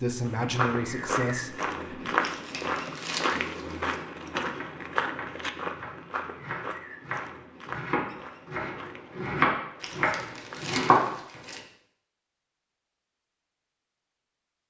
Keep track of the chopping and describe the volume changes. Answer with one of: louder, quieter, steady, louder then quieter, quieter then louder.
louder.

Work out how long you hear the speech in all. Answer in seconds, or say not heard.
2 s.